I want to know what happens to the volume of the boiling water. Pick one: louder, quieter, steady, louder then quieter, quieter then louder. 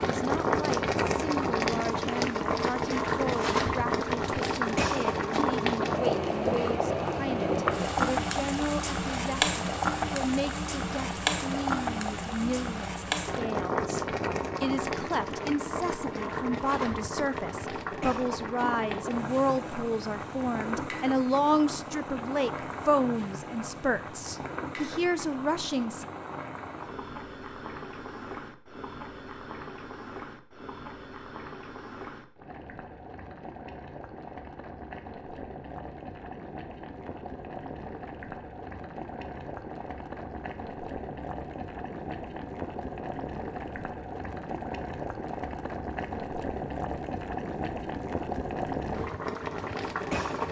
quieter then louder.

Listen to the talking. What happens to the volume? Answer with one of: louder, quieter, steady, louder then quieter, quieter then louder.
louder.